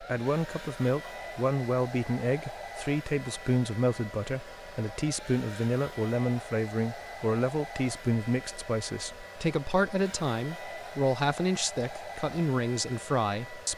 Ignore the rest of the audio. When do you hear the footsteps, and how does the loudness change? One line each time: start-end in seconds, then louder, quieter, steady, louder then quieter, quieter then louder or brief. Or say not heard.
not heard.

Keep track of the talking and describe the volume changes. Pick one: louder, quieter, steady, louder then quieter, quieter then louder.
steady.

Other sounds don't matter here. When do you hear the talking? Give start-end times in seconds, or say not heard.
0.0-13.7.